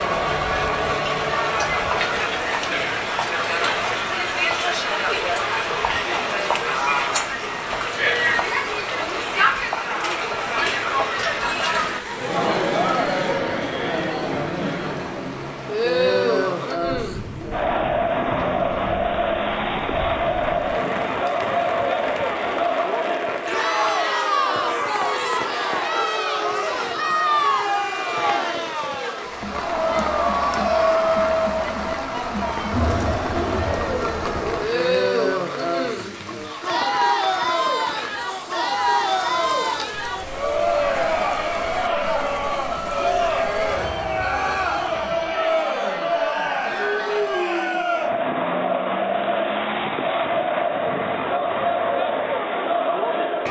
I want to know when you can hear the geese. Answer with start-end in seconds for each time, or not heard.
not heard.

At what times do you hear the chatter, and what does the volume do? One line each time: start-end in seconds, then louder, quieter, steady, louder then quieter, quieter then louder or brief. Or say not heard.
0.0-53.4 steady.